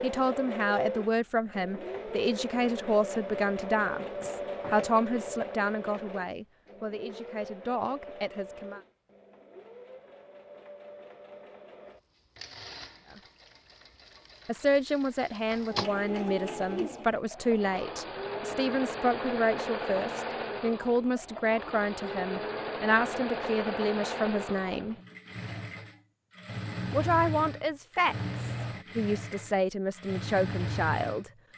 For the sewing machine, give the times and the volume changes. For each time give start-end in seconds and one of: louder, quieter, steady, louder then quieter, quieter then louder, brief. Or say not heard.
0.0-31.5 quieter then louder.